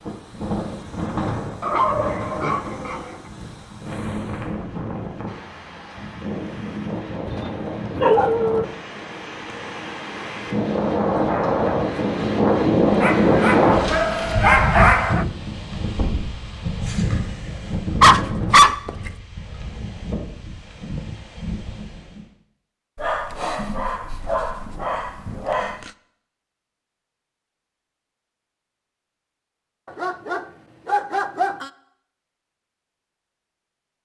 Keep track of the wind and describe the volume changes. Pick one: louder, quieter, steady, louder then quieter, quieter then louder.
louder then quieter.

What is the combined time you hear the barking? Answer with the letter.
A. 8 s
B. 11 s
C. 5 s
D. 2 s
B.